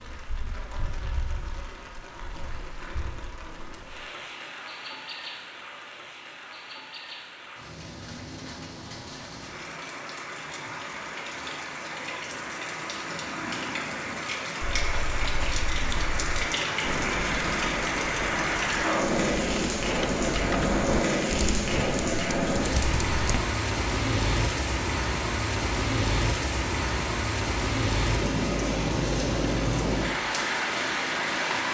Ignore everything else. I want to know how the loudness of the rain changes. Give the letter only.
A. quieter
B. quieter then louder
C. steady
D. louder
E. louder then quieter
D.